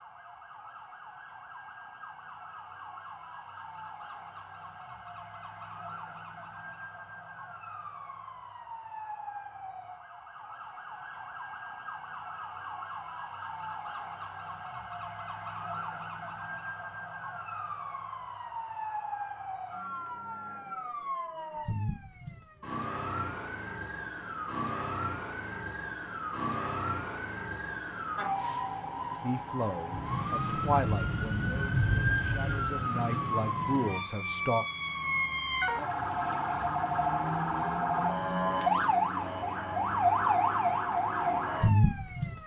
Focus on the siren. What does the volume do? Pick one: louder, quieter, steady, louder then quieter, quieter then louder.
louder.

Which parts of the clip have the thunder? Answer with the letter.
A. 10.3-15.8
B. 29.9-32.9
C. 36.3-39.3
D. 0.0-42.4
B.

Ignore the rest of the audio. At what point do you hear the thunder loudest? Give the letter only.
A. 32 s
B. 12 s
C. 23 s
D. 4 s
A.